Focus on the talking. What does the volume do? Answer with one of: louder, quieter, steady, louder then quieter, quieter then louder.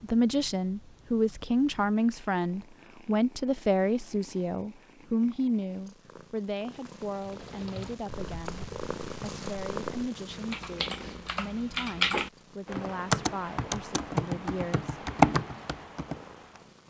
quieter.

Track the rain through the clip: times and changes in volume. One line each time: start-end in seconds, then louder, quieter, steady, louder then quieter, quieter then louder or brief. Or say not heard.
not heard.